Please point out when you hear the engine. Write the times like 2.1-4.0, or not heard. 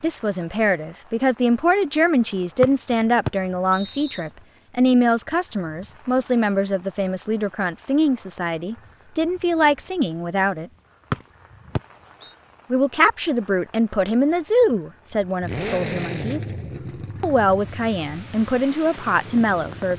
15.4-19.9.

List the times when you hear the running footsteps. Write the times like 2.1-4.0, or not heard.
not heard.